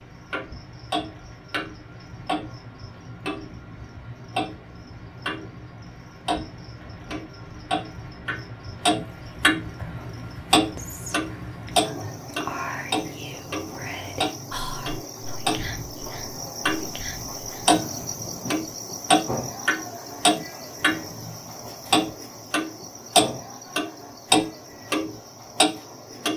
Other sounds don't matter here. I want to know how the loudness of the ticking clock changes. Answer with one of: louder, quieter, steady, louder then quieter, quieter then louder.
louder.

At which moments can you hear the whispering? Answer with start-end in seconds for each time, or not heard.
9.8-17.8.